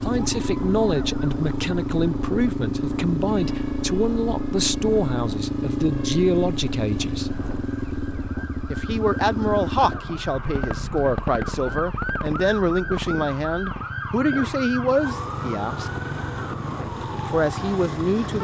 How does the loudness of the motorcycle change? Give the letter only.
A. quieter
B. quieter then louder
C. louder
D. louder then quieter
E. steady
A.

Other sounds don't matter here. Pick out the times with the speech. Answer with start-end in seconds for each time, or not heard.
0.0-7.4, 8.7-15.9, 17.2-18.4.